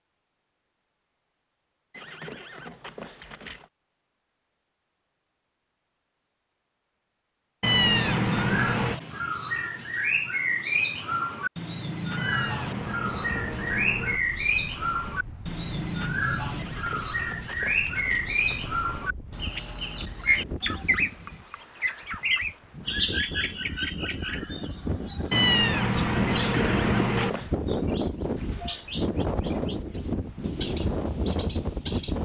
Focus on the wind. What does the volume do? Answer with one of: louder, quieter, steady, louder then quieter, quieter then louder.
louder.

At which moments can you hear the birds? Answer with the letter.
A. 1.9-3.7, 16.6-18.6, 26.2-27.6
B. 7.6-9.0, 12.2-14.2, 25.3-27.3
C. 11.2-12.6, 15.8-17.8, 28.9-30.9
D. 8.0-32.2
D.